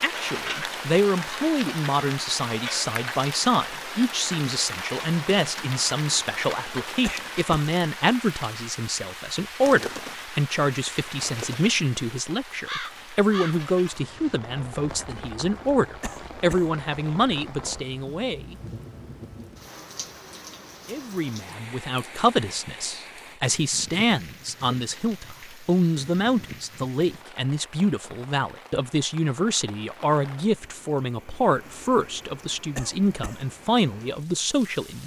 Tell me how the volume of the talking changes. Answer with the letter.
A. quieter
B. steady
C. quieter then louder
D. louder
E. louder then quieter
B.